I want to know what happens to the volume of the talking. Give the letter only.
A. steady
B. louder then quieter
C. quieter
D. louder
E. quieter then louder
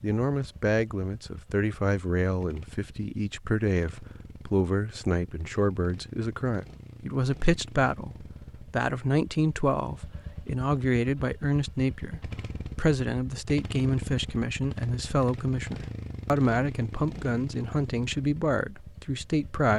A.